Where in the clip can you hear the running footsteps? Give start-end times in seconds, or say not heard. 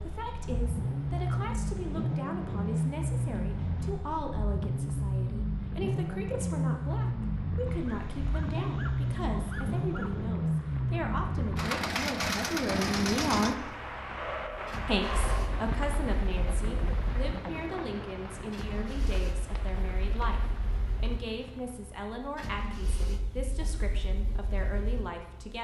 not heard.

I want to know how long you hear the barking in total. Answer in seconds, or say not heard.
4 s.